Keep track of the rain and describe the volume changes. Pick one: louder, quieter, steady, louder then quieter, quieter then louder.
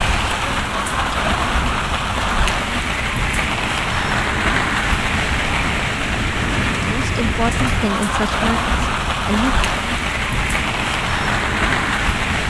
steady.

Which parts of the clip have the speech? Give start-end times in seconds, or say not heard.
6.8-9.7.